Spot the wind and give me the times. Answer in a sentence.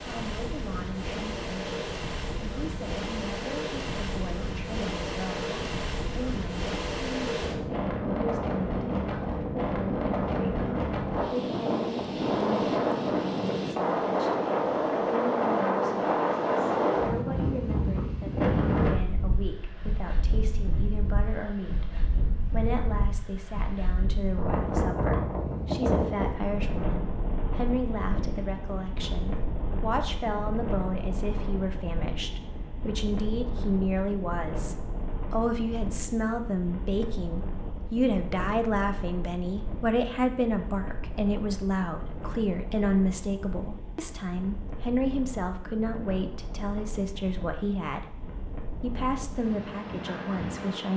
The wind can be heard from 0.0 to 50.9 s.